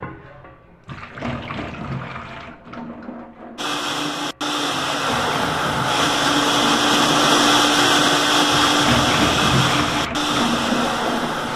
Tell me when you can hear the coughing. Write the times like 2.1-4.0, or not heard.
not heard.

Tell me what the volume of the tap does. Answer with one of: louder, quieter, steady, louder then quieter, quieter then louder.
quieter then louder.